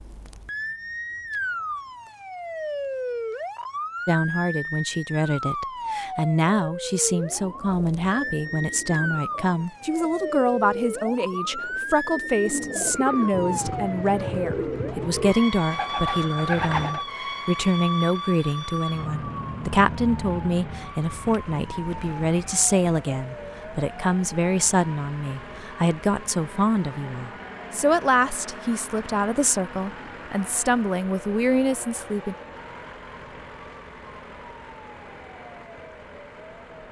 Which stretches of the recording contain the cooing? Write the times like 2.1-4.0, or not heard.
7.2-17.1.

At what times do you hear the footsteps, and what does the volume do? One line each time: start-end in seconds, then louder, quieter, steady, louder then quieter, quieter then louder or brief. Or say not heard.
not heard.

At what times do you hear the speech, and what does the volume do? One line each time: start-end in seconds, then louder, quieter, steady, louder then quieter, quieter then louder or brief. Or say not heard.
4.0-32.4 steady.